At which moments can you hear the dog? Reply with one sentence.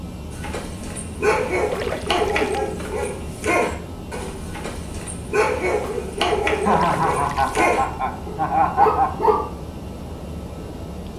You can hear the dog from 0.3 to 9.4 s.